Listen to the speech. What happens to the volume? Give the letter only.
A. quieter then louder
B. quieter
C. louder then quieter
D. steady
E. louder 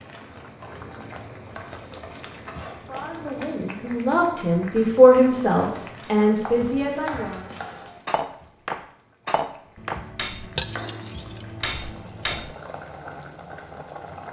C.